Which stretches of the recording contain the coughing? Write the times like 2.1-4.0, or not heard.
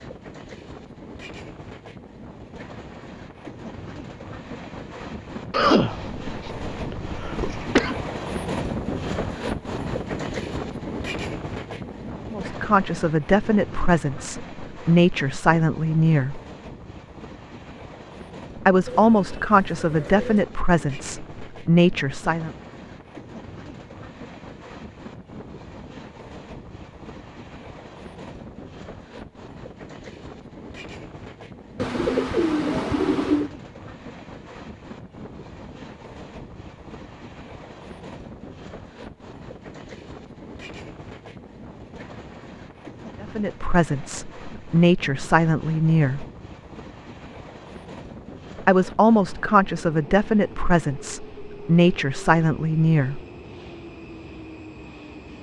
5.5-8.0.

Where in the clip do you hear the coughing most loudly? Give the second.
6 s.